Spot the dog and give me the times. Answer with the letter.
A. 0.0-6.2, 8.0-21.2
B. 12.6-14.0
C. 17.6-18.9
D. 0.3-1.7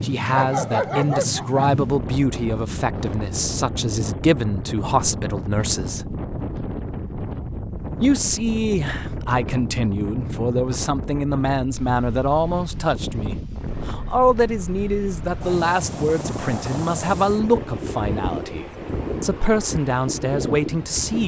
D.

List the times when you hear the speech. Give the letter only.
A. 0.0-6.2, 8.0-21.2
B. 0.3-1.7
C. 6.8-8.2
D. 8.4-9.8
A.